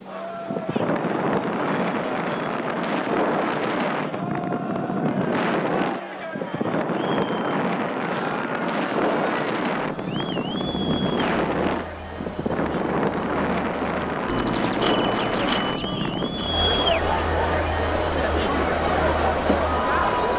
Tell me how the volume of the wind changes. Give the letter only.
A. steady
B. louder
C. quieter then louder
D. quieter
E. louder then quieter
A.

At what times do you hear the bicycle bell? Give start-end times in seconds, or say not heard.
1.5-2.6, 14.2-16.5.